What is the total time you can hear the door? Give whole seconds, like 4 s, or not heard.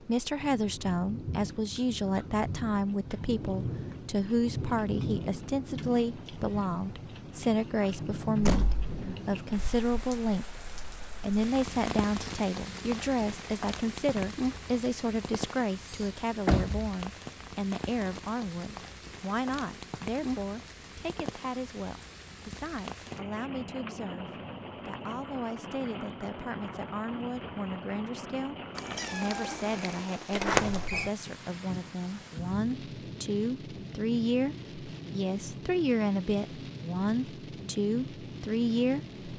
2 s.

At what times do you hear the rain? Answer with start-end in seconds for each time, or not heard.
0.0-39.3.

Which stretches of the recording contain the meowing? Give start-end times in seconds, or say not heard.
28.8-30.1.